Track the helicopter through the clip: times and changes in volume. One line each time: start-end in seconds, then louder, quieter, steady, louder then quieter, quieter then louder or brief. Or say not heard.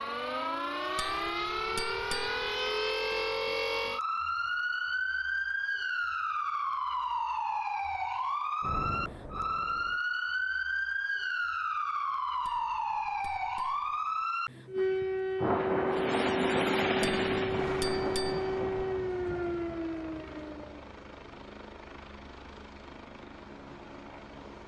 15.9-24.6 quieter.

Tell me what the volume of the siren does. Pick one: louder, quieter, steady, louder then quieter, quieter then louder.
steady.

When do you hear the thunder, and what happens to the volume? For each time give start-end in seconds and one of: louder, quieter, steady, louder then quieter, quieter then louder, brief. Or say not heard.
8.6-10.0 brief
15.3-19.6 quieter.